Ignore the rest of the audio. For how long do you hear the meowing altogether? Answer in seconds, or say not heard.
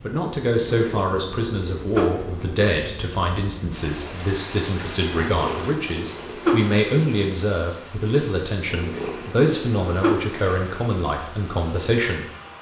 5 s.